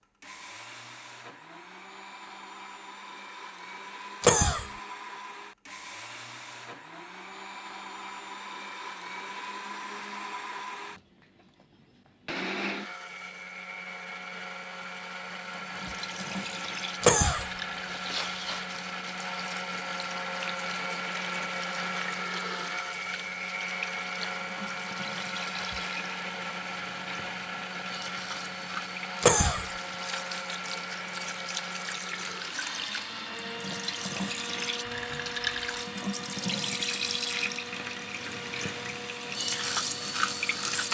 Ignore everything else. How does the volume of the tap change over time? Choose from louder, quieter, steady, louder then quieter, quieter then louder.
louder.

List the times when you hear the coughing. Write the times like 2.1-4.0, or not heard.
4.2-4.7, 17.0-17.5, 29.2-29.7.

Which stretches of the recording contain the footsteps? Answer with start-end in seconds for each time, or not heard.
not heard.